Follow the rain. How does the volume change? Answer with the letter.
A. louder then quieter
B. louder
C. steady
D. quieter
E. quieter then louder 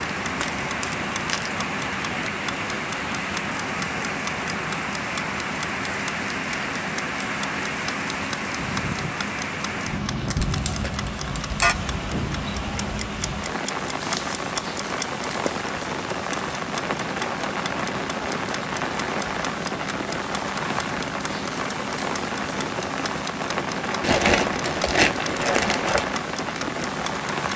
C.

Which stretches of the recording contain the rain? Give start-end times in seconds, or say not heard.
0.0-27.5.